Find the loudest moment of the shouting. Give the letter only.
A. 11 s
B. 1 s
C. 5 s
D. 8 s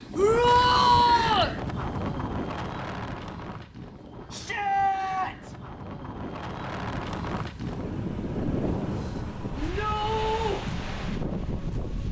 B.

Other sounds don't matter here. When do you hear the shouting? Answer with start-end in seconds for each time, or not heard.
0.1-1.6, 4.3-5.5, 9.6-10.6.